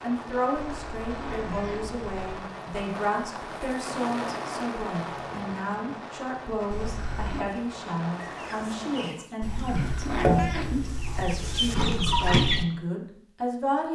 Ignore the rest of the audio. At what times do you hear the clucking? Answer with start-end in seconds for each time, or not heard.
7.5-12.7.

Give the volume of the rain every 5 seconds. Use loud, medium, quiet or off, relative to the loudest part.
loud, loud, off.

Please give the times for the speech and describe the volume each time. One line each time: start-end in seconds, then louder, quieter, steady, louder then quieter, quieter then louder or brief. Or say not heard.
0.0-13.9 steady.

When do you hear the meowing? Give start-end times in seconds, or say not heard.
0.6-2.5, 6.7-7.5, 9.4-11.8.